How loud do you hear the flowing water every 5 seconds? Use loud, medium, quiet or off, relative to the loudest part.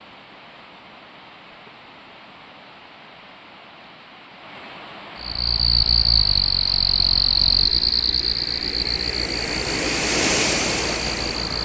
quiet, medium, loud.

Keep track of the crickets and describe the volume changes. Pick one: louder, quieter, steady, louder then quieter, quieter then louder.
quieter.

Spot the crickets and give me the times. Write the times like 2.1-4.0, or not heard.
5.2-11.6.